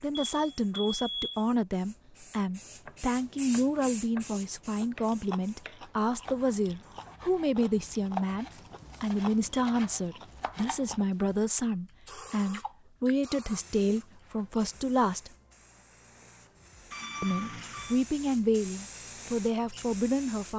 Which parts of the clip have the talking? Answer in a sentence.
You can hear the talking from 0.0 to 15.3 s and from 17.2 to 20.5 s.